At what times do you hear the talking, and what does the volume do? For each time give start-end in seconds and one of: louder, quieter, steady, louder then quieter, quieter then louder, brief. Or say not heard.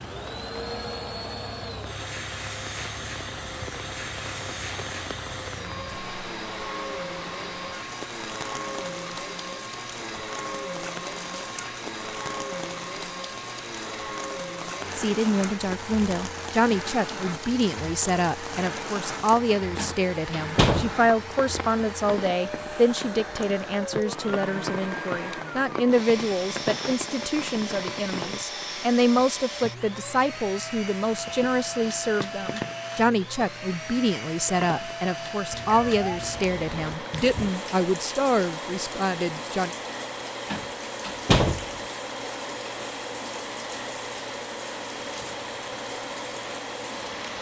14.9-39.7 steady.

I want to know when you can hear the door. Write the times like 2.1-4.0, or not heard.
19.8-20.9, 40.5-41.6.